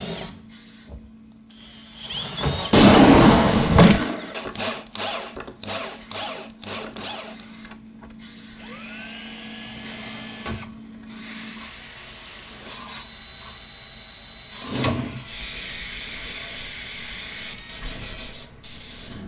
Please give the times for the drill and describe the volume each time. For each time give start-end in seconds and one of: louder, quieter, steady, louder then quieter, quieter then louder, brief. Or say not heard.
0.0-18.4 quieter.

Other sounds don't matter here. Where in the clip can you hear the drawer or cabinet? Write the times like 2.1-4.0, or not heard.
2.7-4.0, 9.7-10.8, 14.6-15.2.